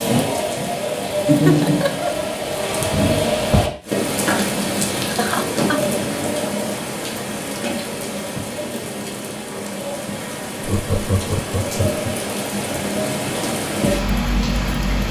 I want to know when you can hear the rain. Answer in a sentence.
The rain can be heard from 0.0 to 15.0 s.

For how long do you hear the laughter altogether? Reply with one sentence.
The laughter can be heard for 3 seconds in total.